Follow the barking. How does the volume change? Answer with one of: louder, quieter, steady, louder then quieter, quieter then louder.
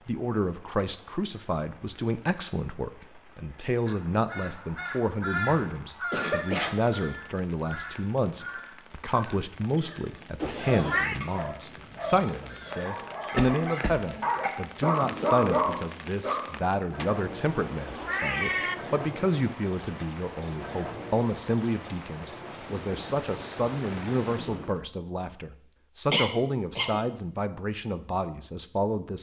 louder.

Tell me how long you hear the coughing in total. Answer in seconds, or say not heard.
3 s.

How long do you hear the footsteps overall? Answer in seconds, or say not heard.
not heard.